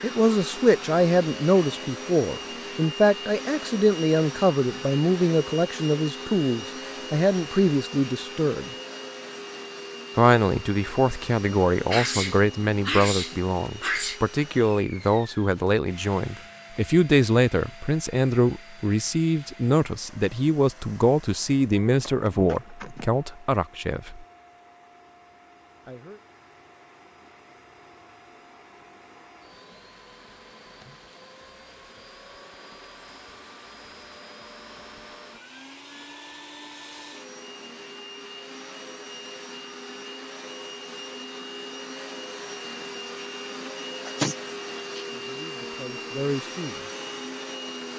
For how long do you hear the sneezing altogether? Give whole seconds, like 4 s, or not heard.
5 s.